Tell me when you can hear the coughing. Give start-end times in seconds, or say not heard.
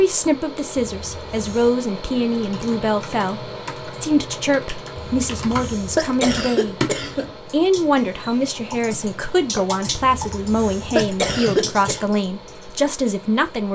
0.8-1.8, 5.0-7.3, 9.9-12.1.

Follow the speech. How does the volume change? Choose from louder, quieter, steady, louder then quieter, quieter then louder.
steady.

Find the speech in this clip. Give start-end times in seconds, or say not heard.
0.0-6.8, 7.5-13.7.